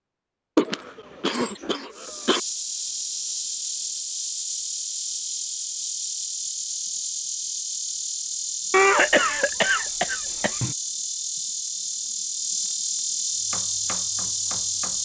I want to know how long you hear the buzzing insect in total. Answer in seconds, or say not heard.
13 s.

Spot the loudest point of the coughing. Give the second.
9 s.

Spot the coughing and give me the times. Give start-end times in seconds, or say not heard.
0.6-2.4, 8.7-10.8.